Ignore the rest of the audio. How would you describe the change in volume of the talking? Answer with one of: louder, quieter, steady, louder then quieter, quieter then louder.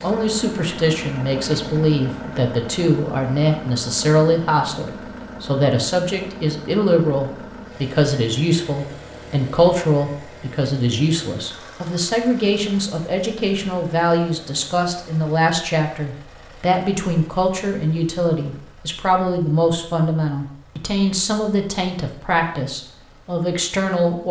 steady.